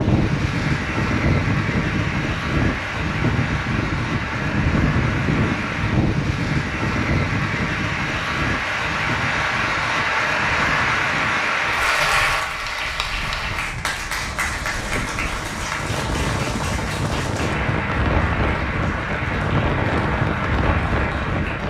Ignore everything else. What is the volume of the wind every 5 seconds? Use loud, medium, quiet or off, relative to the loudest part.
loud, loud, quiet, loud, loud.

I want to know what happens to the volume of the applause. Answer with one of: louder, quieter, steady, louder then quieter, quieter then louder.
louder then quieter.